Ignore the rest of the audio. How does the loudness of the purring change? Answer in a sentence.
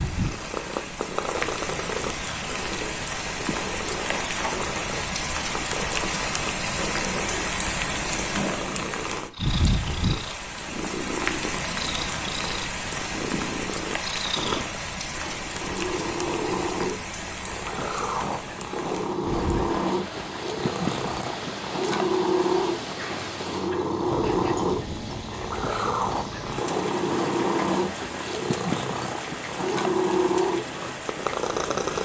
The loudness of the purring goes up.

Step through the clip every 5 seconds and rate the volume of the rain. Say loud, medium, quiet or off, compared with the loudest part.
loud, loud, loud, medium, medium, medium, medium.